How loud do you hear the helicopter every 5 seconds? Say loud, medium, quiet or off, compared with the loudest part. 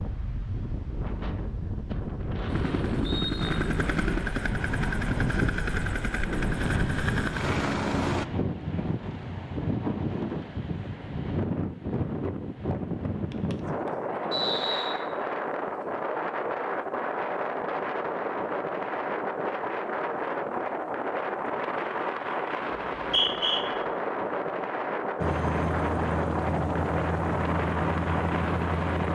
loud, loud, off, off, off, loud.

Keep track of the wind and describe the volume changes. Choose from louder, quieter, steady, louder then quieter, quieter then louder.
steady.